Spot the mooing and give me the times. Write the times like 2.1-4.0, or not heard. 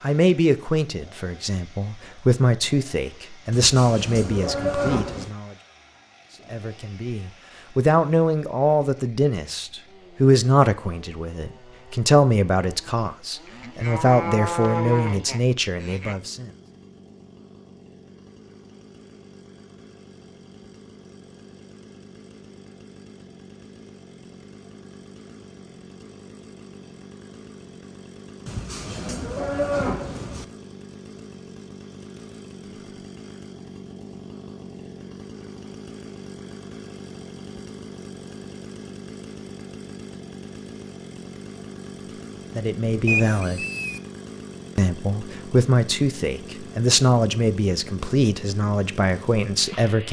3.5-5.3, 13.4-16.1, 28.4-30.4, 43.0-44.0.